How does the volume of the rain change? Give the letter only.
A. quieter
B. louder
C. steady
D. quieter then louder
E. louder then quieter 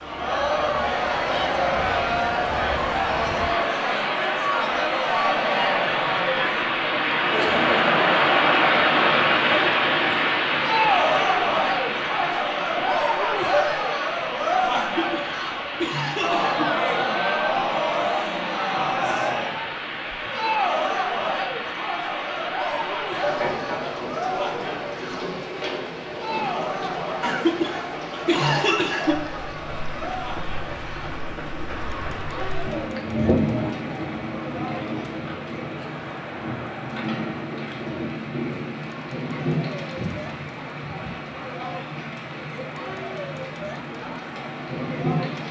A.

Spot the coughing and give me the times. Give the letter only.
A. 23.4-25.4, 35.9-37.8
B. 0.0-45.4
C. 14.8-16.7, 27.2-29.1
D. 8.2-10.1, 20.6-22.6
C.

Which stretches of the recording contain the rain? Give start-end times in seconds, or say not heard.
0.0-45.4.